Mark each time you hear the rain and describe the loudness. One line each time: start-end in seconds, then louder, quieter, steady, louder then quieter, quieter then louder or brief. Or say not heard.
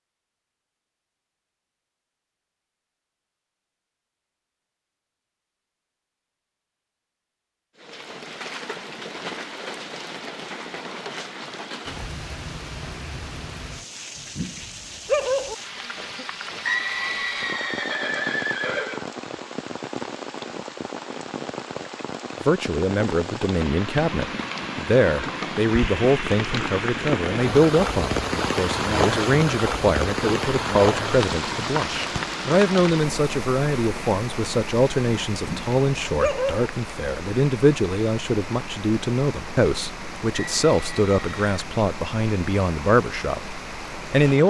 7.8-44.4 louder then quieter.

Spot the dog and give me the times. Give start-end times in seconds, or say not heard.
14.2-15.6, 35.3-36.6.